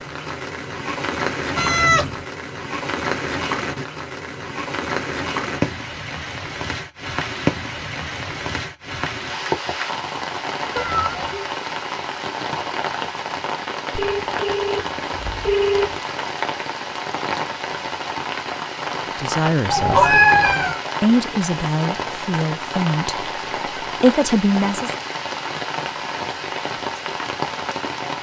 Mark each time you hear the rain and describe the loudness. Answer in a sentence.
You can hear the rain from 0.0 to 28.1 s, at a steady volume.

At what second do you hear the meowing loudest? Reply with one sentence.
The volume of the meowing peaks at 20 seconds.